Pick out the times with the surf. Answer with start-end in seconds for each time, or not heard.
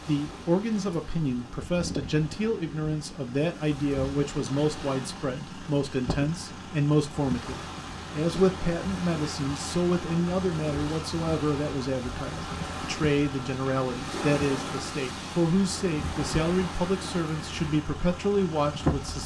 0.0-19.2.